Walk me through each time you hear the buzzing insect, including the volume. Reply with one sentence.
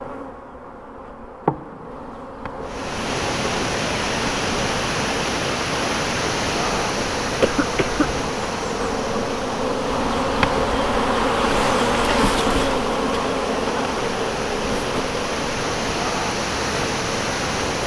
You can hear the buzzing insect from 0.0 to 17.8 s, getting louder then quieter.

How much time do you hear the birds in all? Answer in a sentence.
The birds can't be heard in this clip.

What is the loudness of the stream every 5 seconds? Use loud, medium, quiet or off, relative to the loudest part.
loud, loud, medium, loud.